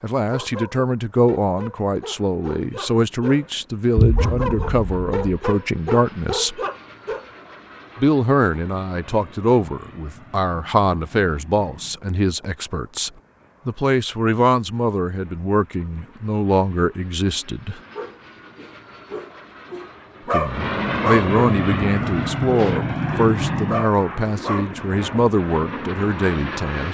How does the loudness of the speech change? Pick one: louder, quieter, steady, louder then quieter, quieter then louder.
steady.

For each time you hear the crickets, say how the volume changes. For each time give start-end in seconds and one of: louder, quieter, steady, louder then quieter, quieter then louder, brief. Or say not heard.
not heard.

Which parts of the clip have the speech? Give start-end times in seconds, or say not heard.
0.0-6.6, 8.0-17.8, 20.3-26.8.